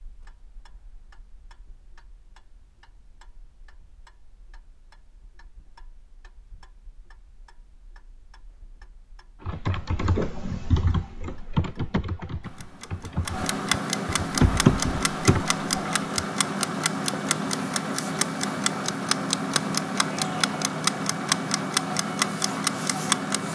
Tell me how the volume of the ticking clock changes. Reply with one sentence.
The loudness of the ticking clock goes up.